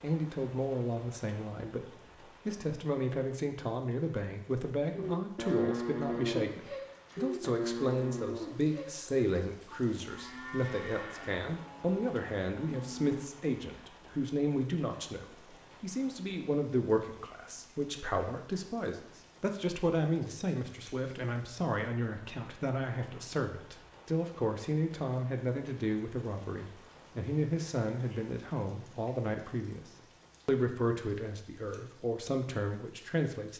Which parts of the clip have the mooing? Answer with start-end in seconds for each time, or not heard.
4.9-13.2.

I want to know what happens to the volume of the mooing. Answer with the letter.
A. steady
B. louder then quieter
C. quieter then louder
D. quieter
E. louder
D.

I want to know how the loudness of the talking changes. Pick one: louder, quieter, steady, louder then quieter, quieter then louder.
steady.